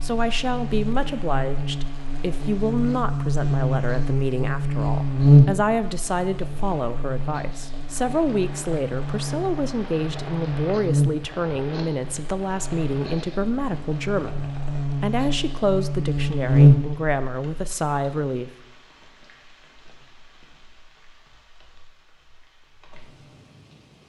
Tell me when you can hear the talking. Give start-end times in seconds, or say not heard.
0.0-18.5.